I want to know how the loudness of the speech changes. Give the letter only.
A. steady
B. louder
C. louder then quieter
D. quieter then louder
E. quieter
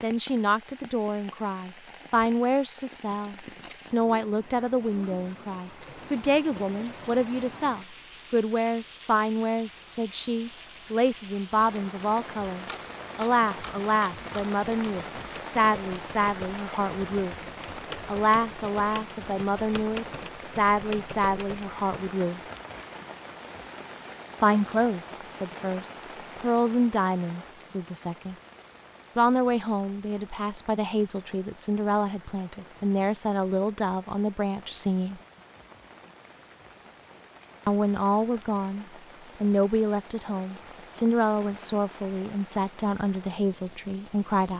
A.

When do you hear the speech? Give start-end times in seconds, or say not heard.
0.0-22.4, 24.4-28.4, 29.1-35.2, 37.6-44.5.